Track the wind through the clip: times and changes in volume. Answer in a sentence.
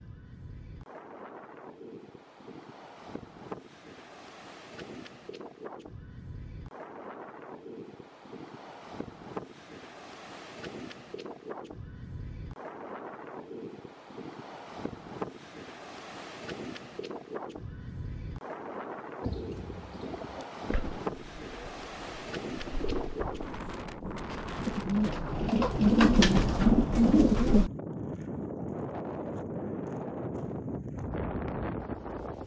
You can hear the wind from 0.0 to 32.4 s, getting louder.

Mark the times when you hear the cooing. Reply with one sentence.
The cooing can be heard from 19.2 to 27.7 s.